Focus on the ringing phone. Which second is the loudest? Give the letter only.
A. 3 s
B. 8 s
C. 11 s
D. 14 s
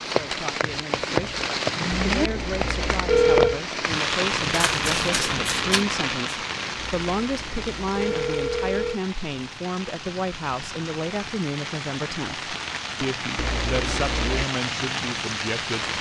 A.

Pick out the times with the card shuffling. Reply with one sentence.
You can hear the card shuffling from 4.5 to 5.8 s.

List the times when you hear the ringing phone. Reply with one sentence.
The ringing phone can be heard from 1.9 to 3.6 s, from 6.8 to 9.0 s and from 13.3 to 14.4 s.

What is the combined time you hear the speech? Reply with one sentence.
You can hear the speech for 16 seconds altogether.